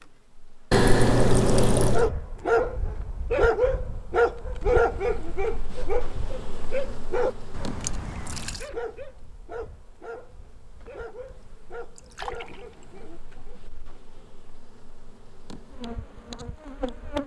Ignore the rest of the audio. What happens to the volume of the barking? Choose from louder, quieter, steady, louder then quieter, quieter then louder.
quieter.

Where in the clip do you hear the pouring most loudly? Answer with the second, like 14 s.
1 s.